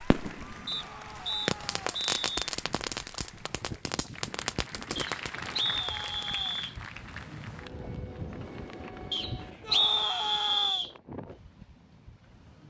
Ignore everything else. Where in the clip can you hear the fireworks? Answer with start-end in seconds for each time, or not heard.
0.0-6.3.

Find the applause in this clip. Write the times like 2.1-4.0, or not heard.
0.0-8.0.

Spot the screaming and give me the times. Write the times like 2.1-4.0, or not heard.
0.7-1.9, 5.4-6.6, 9.6-10.8.